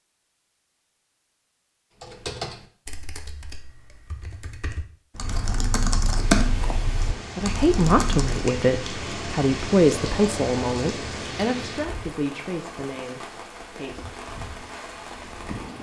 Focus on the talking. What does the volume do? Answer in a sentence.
The volume of the talking goes down.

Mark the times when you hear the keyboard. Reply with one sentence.
You can hear the keyboard from 2.0 to 8.5 s.